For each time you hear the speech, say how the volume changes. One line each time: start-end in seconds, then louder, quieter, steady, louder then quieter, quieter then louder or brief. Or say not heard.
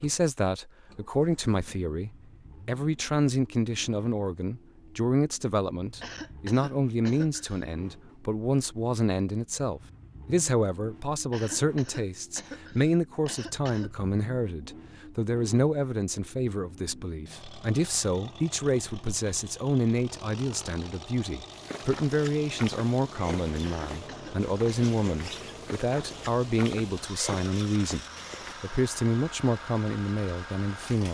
0.0-28.0 steady
28.6-31.0 brief.